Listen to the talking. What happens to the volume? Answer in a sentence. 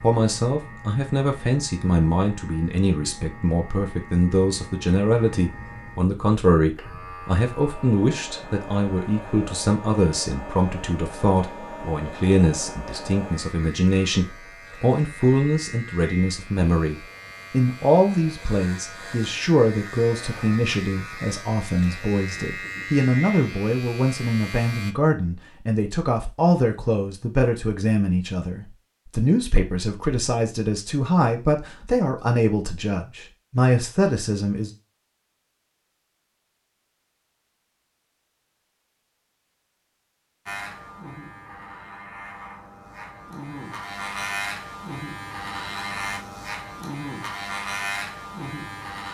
The volume of the talking stays about the same.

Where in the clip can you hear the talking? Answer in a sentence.
You can hear the talking from 0.0 to 34.7 s.